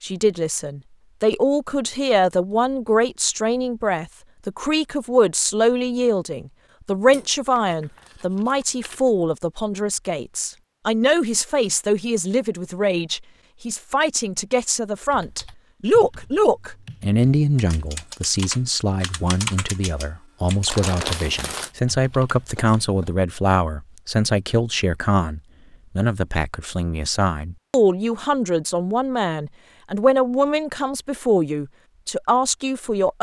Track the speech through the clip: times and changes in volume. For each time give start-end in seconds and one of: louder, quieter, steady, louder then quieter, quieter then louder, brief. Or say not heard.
0.0-33.1 steady.